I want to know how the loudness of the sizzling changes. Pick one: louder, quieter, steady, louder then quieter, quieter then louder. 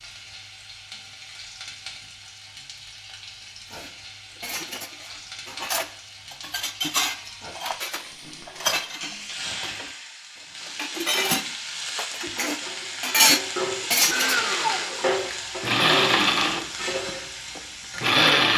louder.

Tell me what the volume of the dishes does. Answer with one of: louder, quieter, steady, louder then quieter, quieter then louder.
louder.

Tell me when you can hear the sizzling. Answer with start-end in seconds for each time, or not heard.
0.0-18.5.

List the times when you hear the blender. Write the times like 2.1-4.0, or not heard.
14.1-18.5.